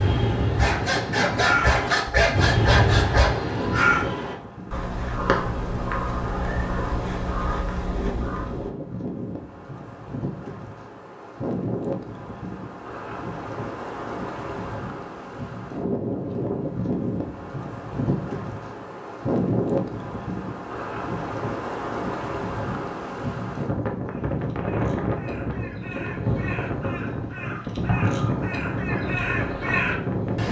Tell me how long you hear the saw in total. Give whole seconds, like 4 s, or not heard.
3 s.